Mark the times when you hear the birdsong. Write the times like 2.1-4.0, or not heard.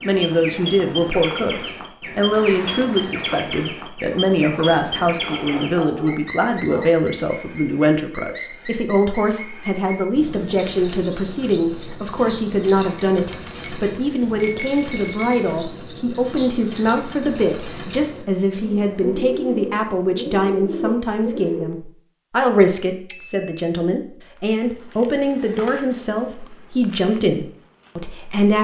0.0-21.6.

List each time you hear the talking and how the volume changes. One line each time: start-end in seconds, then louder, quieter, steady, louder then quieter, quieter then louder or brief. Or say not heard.
0.0-28.5 steady.